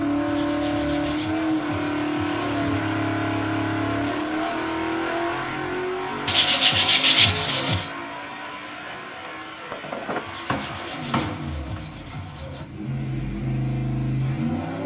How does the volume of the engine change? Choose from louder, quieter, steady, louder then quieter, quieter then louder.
quieter then louder.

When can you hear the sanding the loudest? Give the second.
7 s.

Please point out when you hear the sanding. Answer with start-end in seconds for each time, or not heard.
0.2-3.0, 6.2-7.9, 10.2-12.7.